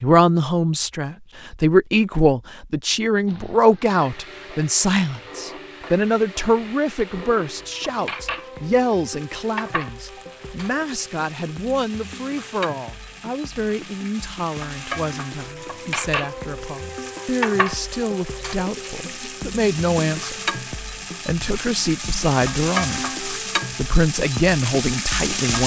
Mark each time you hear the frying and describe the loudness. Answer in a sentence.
You can hear the frying from 3.2 to 25.6 s, getting louder.